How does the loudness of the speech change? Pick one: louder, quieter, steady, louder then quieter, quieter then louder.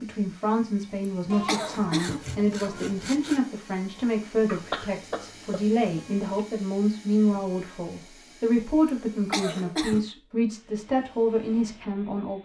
steady.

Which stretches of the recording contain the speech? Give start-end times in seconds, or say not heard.
0.0-12.4.